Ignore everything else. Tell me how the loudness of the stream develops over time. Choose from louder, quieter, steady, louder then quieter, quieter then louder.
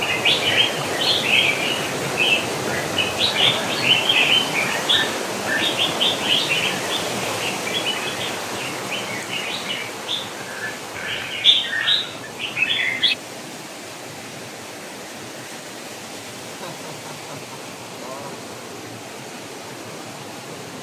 quieter.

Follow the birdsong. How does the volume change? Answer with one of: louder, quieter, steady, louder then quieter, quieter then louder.
quieter then louder.